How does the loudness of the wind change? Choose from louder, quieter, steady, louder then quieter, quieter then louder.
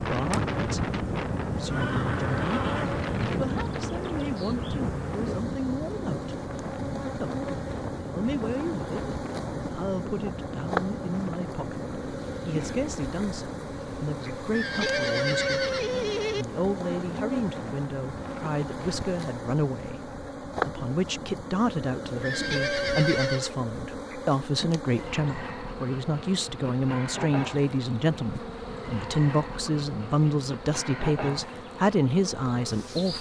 quieter.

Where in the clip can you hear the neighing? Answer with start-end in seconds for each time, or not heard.
1.7-2.9, 14.5-16.4, 22.2-23.6.